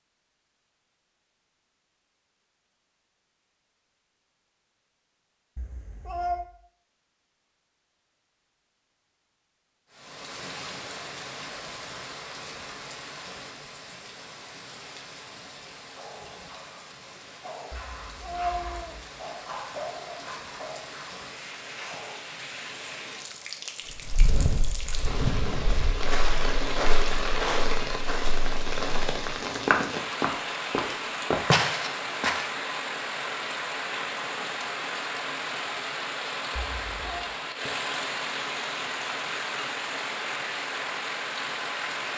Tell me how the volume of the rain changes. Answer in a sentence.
The volume of the rain goes up.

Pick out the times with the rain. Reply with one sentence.
You can hear the rain from 9.9 to 42.1 s.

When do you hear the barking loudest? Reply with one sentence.
The volume of the barking peaks at 20 seconds.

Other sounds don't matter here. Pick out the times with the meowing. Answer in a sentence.
The meowing can be heard from 5.5 to 6.5 s, from 17.7 to 19.1 s and from 36.5 to 37.2 s.